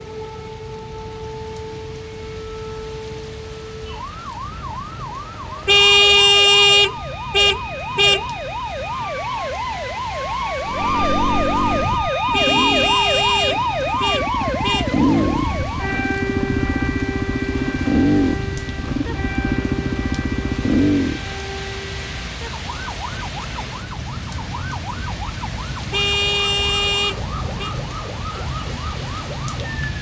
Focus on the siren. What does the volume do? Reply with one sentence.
The volume of the siren goes up, then down.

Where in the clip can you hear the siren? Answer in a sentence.
You can hear the siren from 0.0 to 29.9 s.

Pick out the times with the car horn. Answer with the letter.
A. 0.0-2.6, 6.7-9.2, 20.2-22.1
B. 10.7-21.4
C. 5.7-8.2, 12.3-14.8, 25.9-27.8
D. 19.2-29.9
C.